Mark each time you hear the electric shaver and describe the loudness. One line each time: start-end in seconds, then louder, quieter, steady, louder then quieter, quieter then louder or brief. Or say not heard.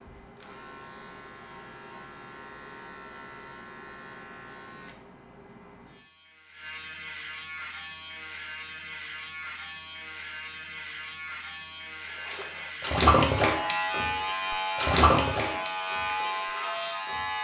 0.0-17.4 louder.